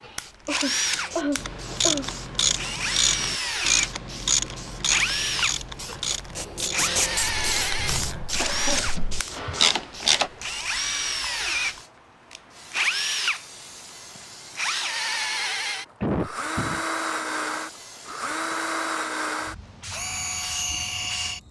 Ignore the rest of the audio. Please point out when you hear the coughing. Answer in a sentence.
You can hear the coughing from 0.5 to 2.1 s, from 7.8 to 9.7 s and from 16.0 to 16.9 s.